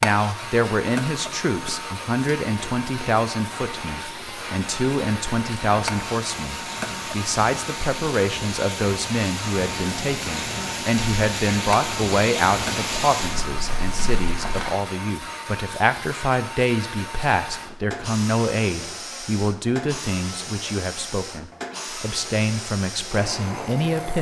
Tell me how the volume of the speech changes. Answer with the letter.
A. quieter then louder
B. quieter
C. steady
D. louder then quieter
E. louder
C.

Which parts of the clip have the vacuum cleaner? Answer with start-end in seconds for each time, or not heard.
0.0-24.1.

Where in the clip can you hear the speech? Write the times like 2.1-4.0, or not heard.
0.0-24.1.